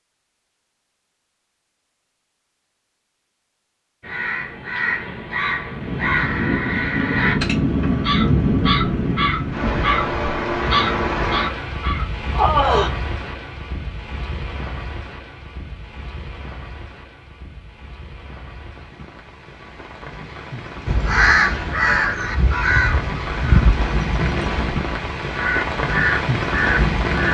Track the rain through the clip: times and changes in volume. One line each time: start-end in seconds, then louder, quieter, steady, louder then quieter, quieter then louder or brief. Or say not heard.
5.7-27.2 quieter then louder.